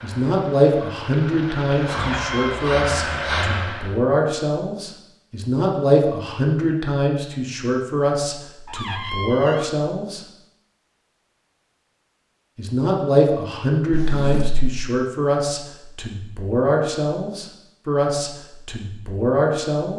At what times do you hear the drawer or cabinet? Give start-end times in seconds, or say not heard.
1.9-2.6, 8.7-9.7, 13.9-14.7.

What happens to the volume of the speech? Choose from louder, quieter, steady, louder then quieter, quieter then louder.
steady.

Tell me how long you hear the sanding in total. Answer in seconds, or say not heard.
not heard.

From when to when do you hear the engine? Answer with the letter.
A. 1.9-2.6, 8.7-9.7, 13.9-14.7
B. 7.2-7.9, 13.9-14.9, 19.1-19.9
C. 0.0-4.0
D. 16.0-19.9
C.